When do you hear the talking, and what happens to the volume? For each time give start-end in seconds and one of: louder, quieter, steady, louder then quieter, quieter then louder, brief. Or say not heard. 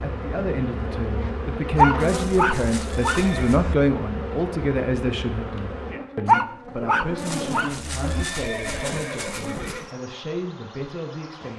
0.0-11.5 quieter.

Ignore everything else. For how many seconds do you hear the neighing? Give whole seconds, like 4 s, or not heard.
4 s.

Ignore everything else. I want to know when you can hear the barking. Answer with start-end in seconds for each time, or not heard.
1.8-3.8, 6.2-8.2.